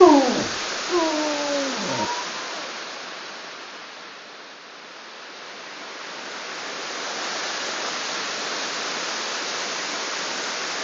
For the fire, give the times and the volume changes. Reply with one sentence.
You can't hear the fire here.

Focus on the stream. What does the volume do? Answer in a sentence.
The loudness of the stream goes down, then up.